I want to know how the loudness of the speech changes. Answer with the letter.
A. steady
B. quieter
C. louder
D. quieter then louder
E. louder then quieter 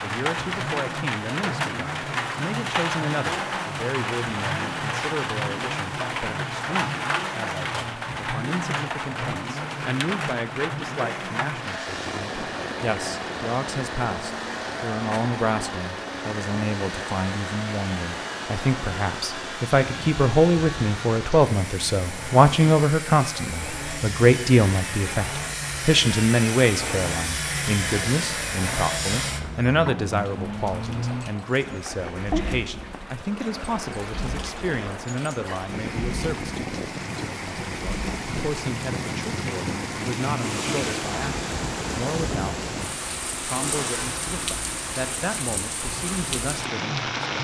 E.